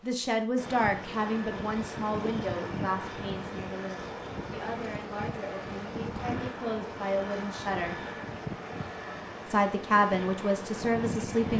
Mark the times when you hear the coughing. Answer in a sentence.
You can't hear the coughing here.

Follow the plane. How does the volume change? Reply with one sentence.
The loudness of the plane stays about the same.